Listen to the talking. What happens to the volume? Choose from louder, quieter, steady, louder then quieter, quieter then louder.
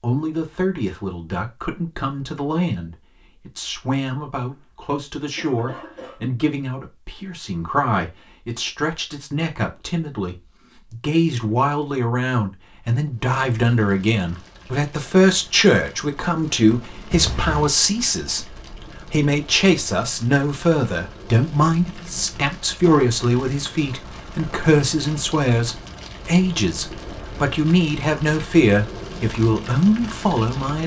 louder.